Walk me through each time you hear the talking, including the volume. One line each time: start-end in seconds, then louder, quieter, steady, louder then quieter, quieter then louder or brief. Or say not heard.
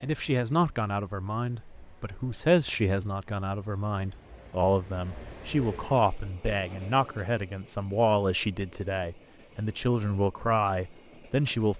0.0-11.7 steady.